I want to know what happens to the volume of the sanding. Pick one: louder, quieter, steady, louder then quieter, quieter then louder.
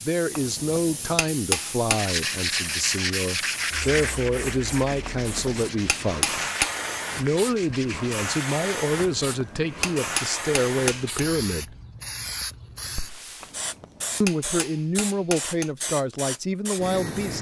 quieter.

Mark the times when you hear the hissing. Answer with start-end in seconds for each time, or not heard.
0.0-17.3.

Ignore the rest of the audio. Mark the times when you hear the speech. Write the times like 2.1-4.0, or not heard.
0.0-6.4, 7.2-11.8, 14.2-17.3.